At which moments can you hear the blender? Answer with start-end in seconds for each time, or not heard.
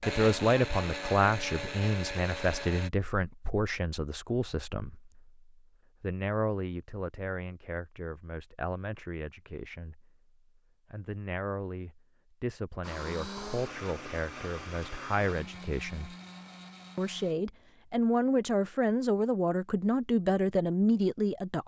0.0-2.9, 12.8-17.4.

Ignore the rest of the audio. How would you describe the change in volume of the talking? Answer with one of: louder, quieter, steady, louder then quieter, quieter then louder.
quieter then louder.